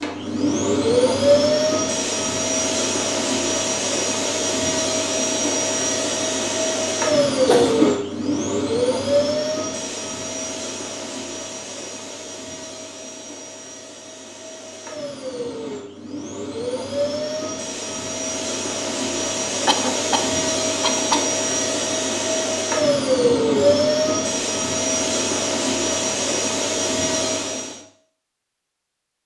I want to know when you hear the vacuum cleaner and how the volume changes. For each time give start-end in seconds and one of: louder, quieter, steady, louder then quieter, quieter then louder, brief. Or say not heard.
0.0-27.8 quieter then louder.